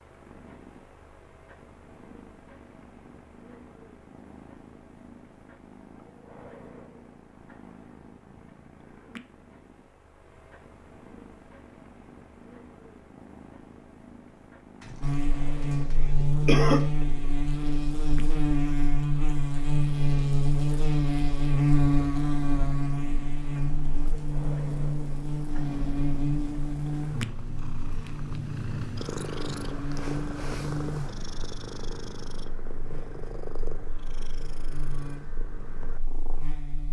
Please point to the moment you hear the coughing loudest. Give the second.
17 s.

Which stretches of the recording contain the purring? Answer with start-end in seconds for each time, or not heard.
0.0-36.8.